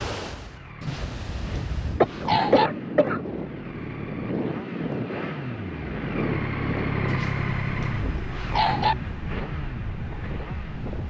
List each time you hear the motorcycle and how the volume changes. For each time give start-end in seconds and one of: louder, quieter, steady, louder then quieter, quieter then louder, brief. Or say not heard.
0.2-11.0 louder then quieter.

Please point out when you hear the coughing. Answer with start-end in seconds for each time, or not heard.
2.0-3.4.